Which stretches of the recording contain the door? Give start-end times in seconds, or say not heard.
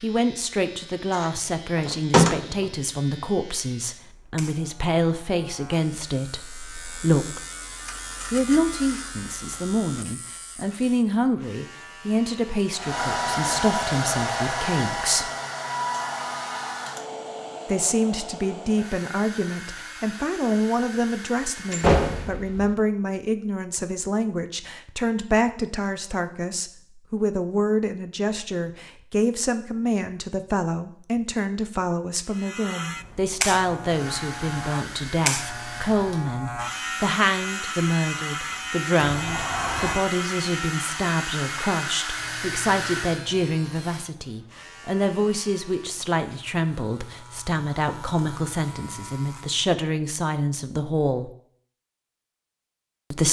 1.2-2.6, 21.7-22.8, 39.0-40.0.